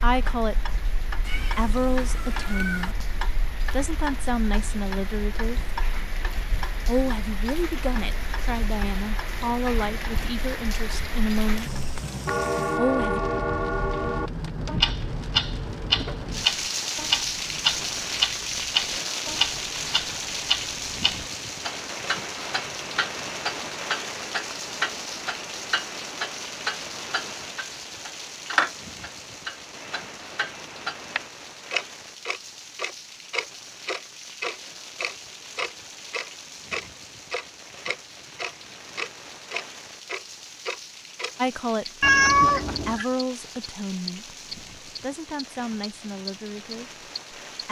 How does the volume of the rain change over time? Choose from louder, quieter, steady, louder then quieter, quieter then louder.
louder then quieter.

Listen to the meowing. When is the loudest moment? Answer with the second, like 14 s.
42 s.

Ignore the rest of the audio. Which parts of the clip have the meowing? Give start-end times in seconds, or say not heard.
1.2-3.0, 42.0-43.0.